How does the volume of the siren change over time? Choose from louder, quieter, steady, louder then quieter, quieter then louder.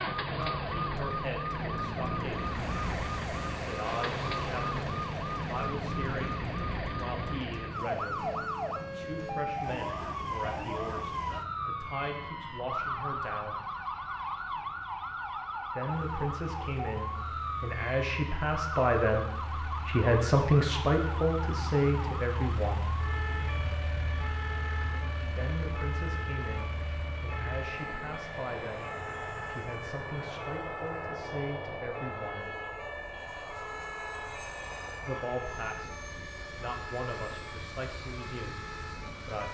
quieter.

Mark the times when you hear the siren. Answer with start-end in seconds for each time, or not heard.
0.0-39.4.